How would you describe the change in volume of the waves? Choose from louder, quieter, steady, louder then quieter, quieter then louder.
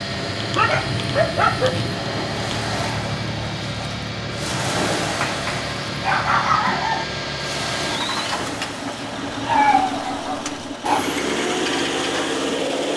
quieter.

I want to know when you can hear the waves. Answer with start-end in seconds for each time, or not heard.
0.0-10.7.